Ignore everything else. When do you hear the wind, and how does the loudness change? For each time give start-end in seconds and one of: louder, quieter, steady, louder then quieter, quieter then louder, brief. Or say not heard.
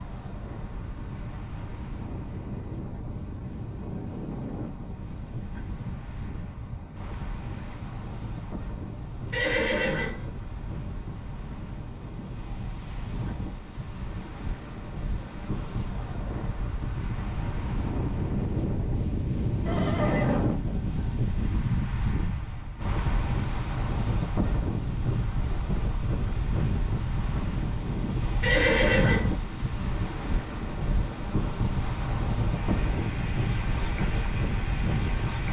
0.0-35.4 louder.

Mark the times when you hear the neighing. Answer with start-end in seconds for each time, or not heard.
9.3-10.2, 19.6-20.5, 28.4-29.4.